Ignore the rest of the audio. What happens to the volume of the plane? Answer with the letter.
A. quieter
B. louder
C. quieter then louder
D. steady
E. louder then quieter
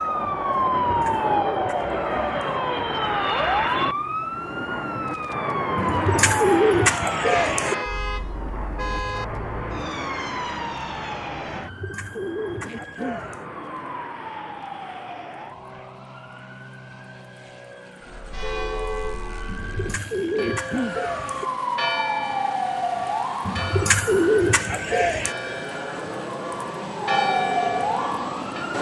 C.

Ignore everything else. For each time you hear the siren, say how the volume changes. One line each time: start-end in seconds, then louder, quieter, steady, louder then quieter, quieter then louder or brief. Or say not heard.
0.0-28.7 quieter then louder.